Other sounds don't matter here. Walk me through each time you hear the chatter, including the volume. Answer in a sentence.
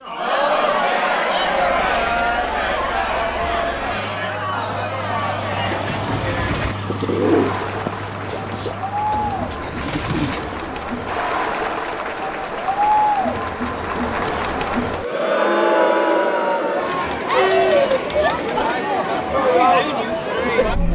The chatter can be heard from 0.1 to 20.9 s, getting quieter then louder.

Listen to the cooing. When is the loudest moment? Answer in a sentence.
The loudest moment of the cooing is at 7 seconds.